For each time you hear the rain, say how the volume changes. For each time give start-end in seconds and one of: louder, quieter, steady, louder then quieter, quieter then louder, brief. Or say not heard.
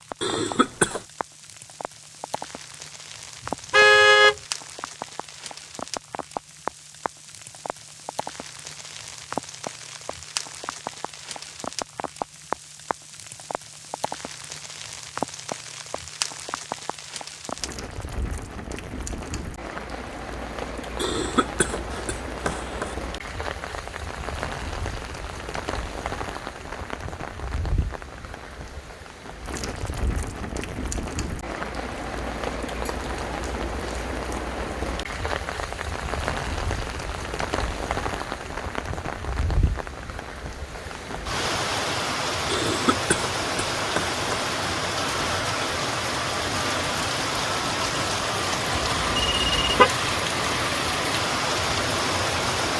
0.0-52.7 louder.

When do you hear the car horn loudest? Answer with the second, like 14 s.
4 s.